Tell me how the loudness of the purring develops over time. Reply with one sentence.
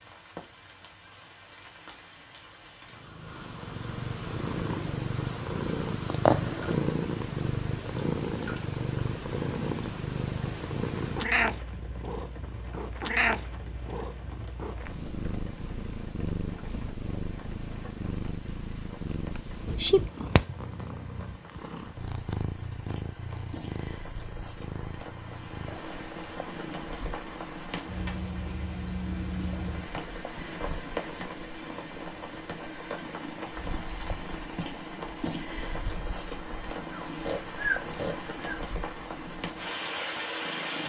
The volume of the purring goes down.